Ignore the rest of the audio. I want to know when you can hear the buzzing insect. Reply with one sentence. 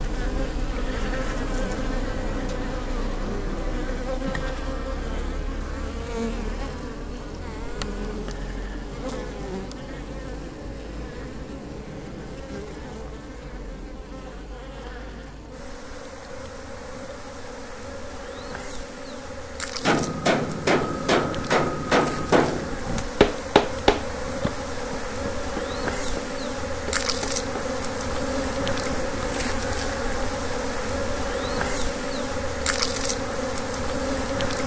You can hear the buzzing insect from 0.0 to 34.6 s.